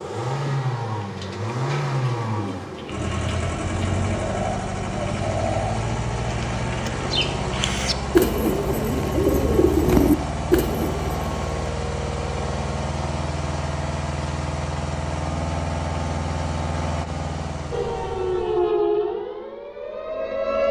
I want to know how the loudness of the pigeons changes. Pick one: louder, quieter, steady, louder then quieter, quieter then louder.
louder.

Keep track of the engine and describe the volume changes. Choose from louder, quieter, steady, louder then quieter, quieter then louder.
steady.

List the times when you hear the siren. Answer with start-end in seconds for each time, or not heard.
17.7-20.6.